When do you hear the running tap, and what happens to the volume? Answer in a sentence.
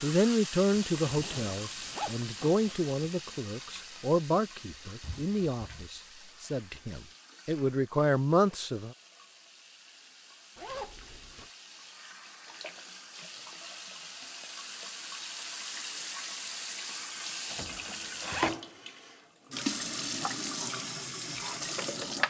You can hear the running tap from 0.0 to 22.2 s, getting quieter then louder.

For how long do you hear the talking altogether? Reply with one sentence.
The talking can be heard for 9 seconds in total.